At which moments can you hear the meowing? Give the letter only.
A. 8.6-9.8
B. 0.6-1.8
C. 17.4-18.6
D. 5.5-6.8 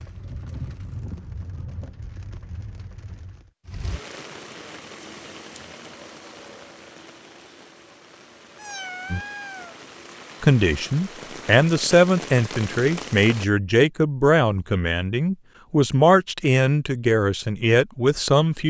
A.